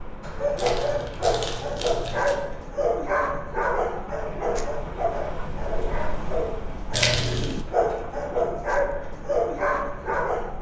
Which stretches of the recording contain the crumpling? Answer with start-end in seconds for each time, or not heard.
0.6-2.4, 6.9-7.6.